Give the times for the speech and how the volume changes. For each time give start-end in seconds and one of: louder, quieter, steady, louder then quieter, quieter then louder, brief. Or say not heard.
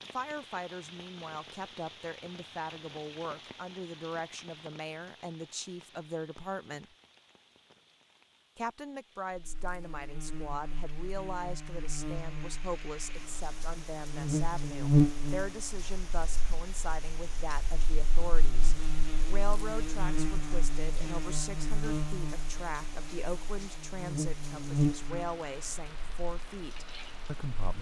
0.1-7.0 steady
8.6-27.7 steady.